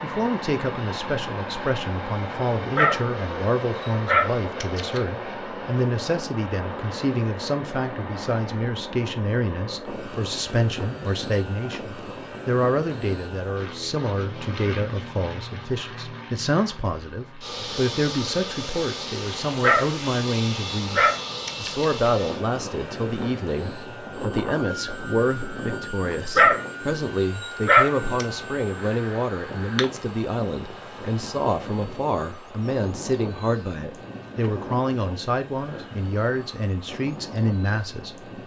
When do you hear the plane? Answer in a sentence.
The plane can be heard from 0.0 to 38.4 s.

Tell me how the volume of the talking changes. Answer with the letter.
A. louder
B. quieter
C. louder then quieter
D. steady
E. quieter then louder
D.